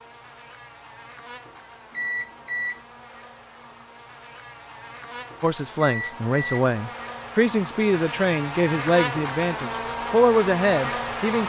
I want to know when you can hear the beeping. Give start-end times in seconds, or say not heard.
1.9-2.8, 5.8-6.7.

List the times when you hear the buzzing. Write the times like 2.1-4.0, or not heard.
0.0-11.4.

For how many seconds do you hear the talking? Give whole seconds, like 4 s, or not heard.
6 s.